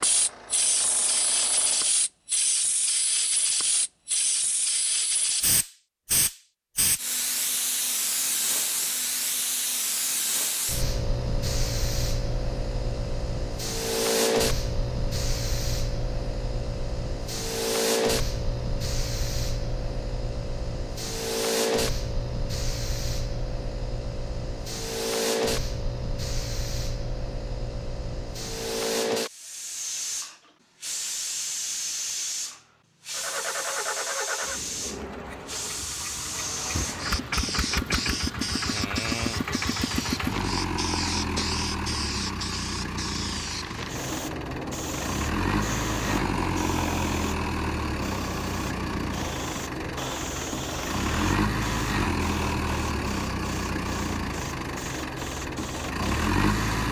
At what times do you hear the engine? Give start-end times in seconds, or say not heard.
0.0-1.9, 33.1-56.8.